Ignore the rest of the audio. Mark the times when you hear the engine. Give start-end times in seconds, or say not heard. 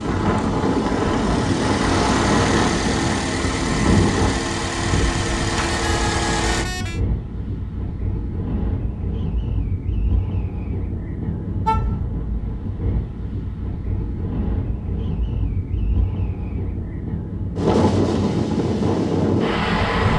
0.0-6.7.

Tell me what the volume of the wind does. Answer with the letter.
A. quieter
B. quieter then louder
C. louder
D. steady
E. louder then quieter
B.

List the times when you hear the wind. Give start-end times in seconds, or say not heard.
0.0-20.1.